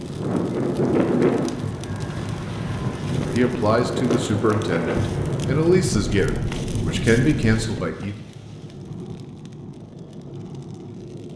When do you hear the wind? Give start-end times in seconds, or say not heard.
0.0-7.6.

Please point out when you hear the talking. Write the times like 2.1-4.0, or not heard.
3.2-8.2.